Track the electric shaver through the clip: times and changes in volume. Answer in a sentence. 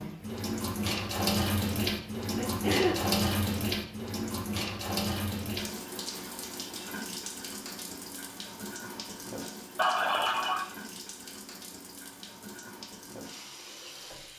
You can't hear the electric shaver here.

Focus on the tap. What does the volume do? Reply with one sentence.
The volume of the tap goes down.